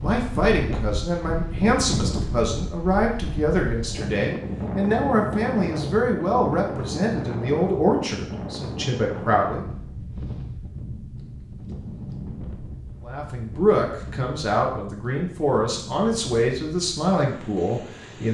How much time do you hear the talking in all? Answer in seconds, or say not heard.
15 s.